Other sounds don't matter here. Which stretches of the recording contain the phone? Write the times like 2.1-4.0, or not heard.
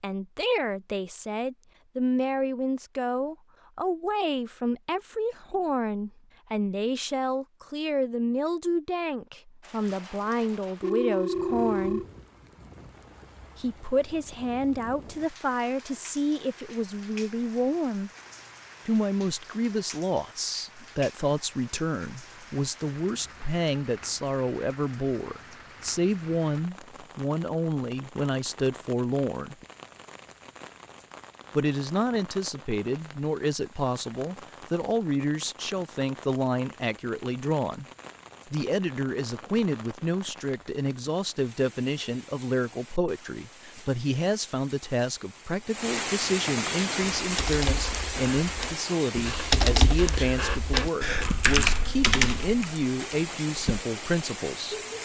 10.8-12.1.